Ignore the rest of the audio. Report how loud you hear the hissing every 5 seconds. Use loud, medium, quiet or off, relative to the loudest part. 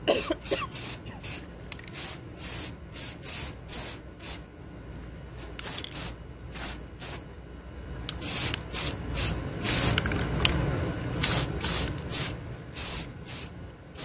medium, loud, loud.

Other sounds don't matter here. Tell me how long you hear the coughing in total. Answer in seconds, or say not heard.
2 s.